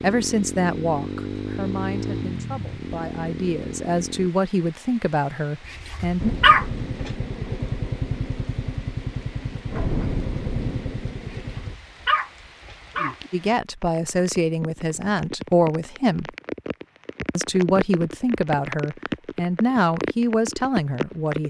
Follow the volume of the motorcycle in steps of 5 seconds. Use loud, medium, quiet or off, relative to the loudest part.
loud, loud, loud, off, off.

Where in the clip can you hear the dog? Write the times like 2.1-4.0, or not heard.
5.7-7.1, 11.3-13.3.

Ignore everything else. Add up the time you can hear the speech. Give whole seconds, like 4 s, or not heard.
13 s.